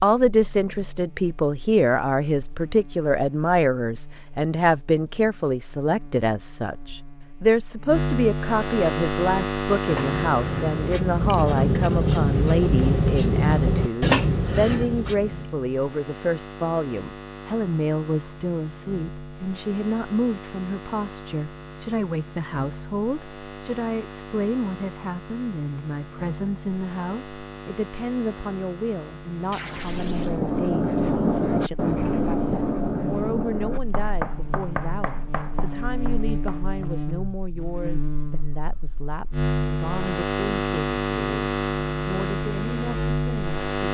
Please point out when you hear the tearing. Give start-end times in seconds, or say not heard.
29.5-30.4.